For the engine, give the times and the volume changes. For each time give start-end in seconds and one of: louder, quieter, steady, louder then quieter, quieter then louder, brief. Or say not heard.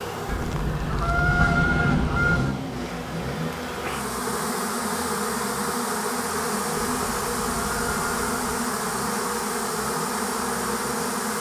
0.0-11.3 quieter.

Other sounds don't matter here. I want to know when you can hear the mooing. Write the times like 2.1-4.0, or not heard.
not heard.